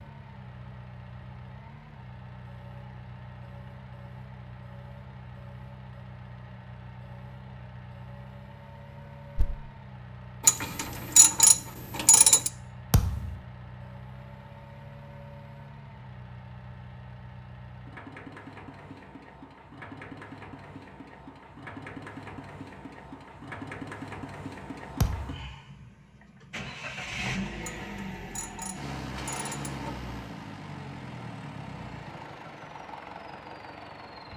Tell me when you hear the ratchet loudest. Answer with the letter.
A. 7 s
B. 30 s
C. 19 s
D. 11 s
D.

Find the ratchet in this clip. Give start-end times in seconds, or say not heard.
10.4-12.5, 27.6-30.1.